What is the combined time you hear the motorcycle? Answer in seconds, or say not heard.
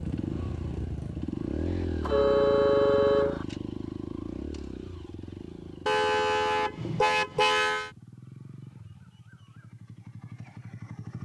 11 s.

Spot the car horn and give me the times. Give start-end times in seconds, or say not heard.
2.0-3.5, 5.8-7.9.